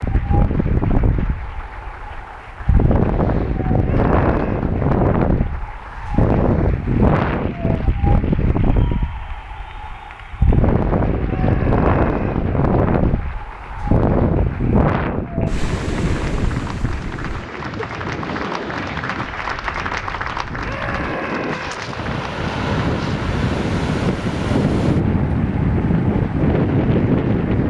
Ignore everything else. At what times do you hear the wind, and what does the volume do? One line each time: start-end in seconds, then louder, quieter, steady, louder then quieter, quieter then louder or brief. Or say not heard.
0.0-27.6 quieter then louder.